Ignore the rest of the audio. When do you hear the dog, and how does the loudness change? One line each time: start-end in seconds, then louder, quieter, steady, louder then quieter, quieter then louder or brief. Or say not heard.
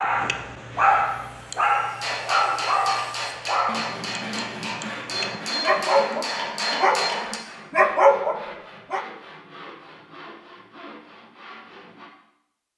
0.0-9.1 quieter then louder.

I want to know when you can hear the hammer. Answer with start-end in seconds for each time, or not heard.
2.0-7.4.